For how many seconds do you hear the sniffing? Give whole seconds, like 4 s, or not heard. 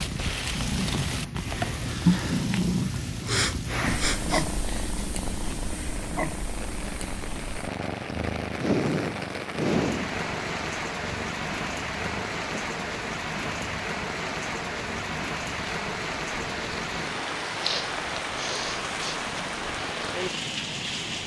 5 s.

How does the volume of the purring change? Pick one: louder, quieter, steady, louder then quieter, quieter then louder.
quieter.